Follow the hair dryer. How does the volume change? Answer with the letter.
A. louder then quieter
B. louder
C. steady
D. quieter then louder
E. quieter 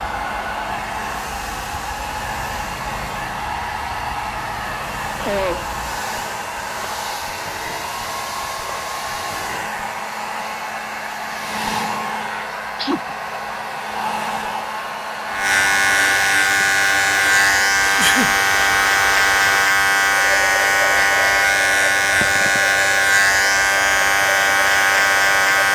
C.